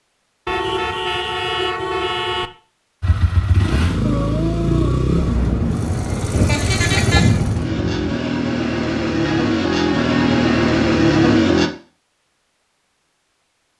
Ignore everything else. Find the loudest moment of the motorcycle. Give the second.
11 s.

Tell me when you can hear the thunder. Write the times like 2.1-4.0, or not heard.
4.0-8.1.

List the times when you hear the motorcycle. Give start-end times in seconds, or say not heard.
3.0-11.7.